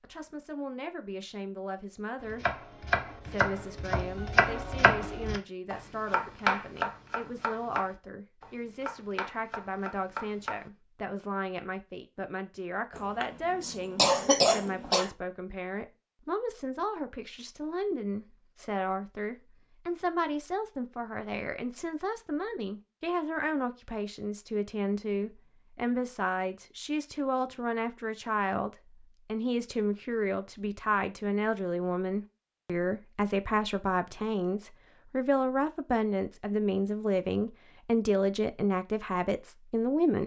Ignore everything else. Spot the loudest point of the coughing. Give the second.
14 s.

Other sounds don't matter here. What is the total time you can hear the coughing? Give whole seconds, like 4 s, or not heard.
2 s.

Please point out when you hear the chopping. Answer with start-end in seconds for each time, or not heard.
2.2-10.7.